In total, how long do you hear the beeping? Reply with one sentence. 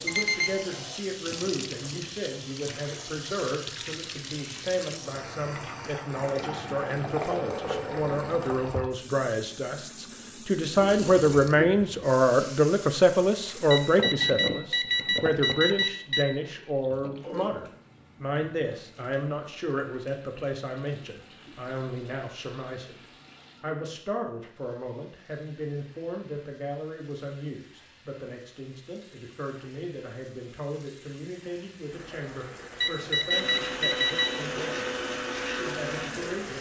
The beeping can be heard for 5 seconds in total.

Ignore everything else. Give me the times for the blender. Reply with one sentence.
You can hear the blender from 33.3 to 36.5 s.